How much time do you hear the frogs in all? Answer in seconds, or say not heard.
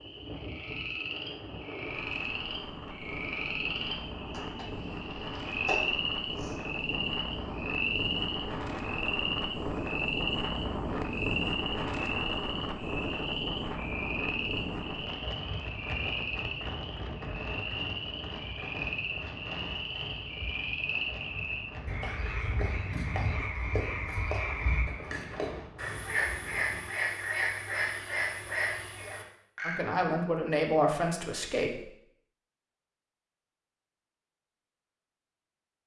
30 s.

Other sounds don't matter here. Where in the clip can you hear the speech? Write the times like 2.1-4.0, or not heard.
29.6-31.9.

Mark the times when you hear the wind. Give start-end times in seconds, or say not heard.
0.0-26.9.